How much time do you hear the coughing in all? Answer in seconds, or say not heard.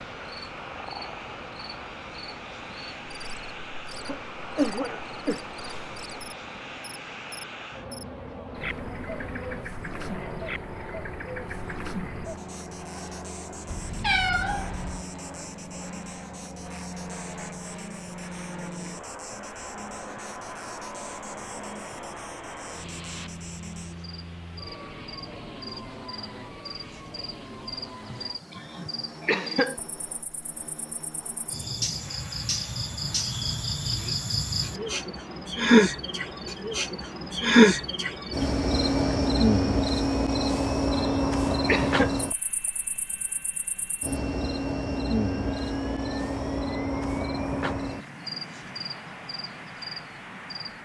5 s.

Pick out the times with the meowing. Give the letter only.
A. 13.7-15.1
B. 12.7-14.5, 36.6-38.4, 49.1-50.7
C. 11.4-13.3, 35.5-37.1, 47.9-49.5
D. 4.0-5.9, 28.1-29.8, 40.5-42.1
A.